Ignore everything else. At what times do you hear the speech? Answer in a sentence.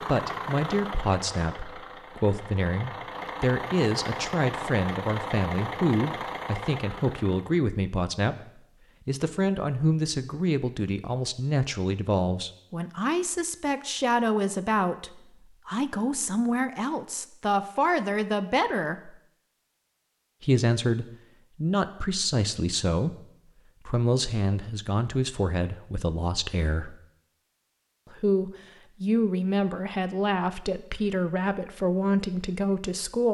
You can hear the speech from 0.0 to 19.2 s, from 20.4 to 27.0 s and from 28.1 to 33.2 s.